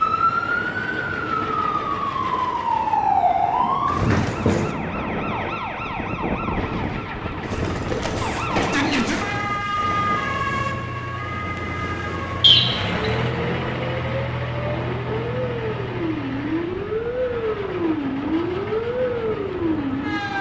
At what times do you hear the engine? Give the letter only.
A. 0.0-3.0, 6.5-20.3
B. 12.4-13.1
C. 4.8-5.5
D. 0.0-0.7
A.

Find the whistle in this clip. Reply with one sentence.
You can hear the whistle from 12.4 to 13.1 s.